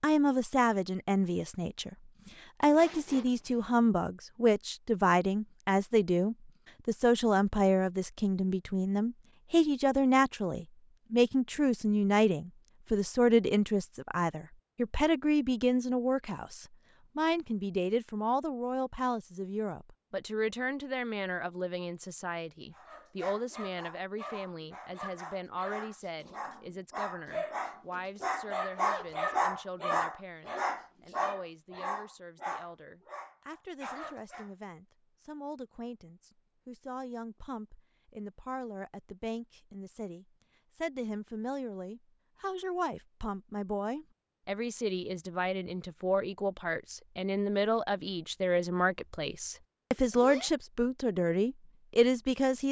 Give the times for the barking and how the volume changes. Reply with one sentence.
The barking can be heard from 22.7 to 34.5 s, getting louder then quieter.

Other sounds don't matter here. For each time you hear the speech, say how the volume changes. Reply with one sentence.
The speech can be heard from 0.0 to 52.6 s, getting quieter then louder.